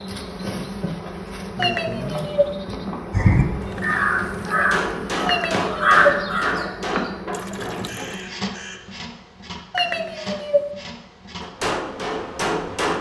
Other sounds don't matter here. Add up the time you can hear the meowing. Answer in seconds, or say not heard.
3 s.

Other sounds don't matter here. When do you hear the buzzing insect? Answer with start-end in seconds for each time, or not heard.
0.0-12.9.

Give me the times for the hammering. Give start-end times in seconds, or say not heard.
4.5-8.1, 11.4-12.9.